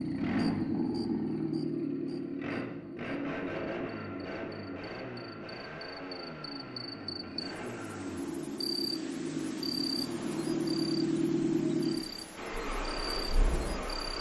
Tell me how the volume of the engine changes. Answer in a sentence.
The volume of the engine goes down, then up.